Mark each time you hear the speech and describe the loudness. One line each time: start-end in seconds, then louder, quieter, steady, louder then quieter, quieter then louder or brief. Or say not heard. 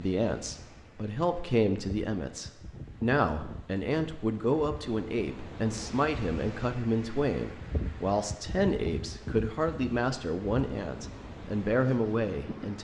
0.0-12.7 steady.